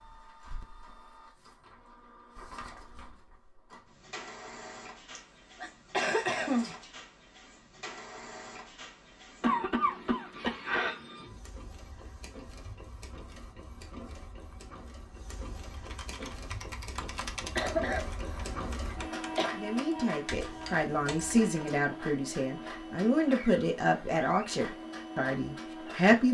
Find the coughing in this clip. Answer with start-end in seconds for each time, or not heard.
5.2-6.8, 9.4-10.9, 17.6-19.4.